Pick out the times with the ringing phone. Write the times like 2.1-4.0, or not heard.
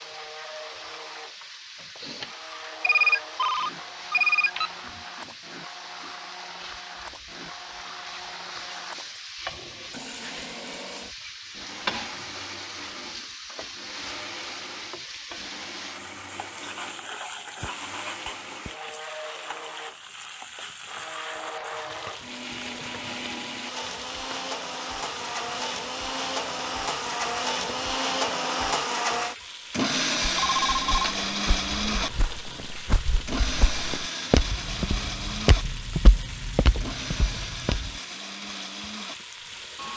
2.8-4.7, 30.4-31.1.